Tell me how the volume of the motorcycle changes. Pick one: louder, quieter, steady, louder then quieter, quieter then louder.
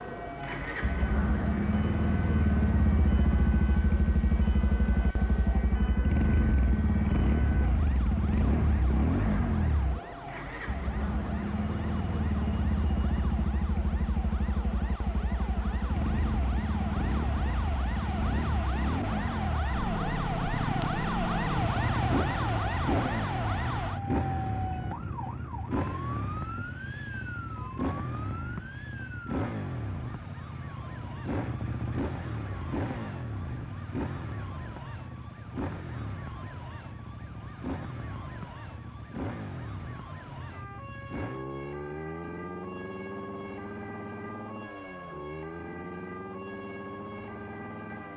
quieter.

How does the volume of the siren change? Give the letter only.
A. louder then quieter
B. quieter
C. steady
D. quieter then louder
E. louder
A.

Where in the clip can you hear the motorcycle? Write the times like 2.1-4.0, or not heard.
0.0-48.1.